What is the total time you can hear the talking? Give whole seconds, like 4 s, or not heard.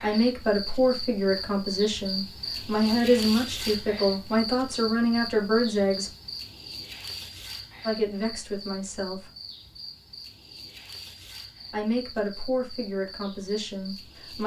10 s.